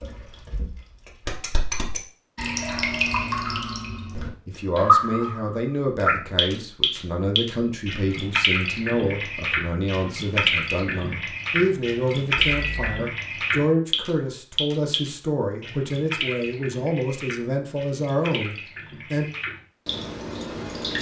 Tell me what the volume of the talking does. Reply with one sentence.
The loudness of the talking stays about the same.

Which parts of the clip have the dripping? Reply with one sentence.
You can hear the dripping from 0.0 to 20.9 s.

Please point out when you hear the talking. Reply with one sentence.
You can hear the talking from 4.5 to 19.2 s.